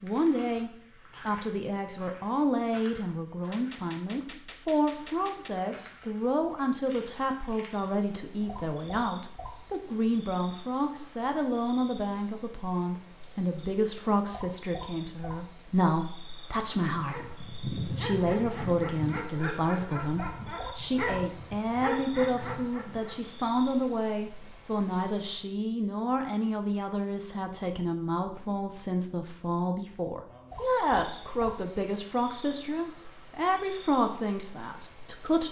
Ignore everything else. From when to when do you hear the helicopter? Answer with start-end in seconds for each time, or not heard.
not heard.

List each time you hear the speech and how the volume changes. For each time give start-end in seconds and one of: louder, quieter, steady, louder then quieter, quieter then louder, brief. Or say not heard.
0.0-35.4 steady.